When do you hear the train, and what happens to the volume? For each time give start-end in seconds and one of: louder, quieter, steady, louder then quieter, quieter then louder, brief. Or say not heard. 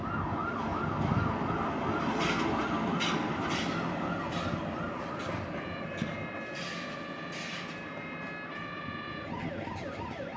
0.0-10.3 quieter.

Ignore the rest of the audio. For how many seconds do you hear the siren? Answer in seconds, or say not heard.
10 s.